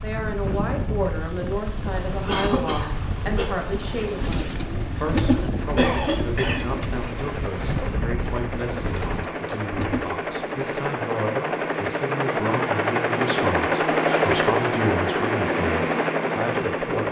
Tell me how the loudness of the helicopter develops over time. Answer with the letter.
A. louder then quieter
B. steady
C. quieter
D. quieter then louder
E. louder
E.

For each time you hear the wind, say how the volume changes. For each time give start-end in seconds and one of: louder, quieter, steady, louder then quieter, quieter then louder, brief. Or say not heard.
0.0-9.2 steady.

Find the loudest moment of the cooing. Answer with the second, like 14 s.
5 s.